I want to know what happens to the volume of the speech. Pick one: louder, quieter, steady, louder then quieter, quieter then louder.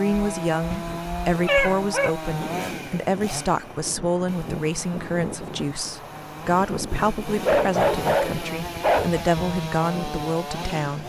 steady.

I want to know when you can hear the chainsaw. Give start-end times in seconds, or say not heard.
0.0-11.0.